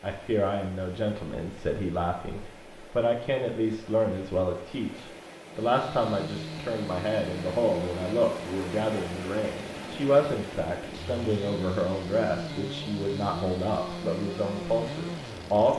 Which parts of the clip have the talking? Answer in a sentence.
You can hear the talking from 0.0 to 15.7 s.